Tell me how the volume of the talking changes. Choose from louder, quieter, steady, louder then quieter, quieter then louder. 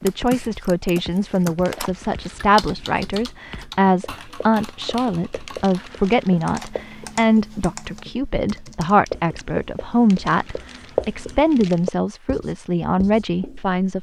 steady.